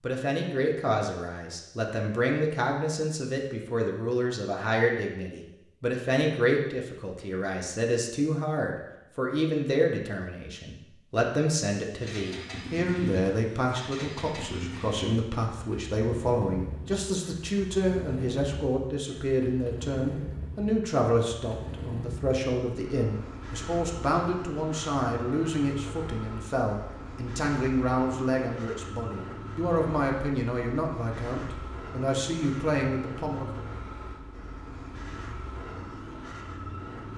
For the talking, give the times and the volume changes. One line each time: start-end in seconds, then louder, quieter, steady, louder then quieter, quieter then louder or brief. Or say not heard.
0.0-33.6 steady.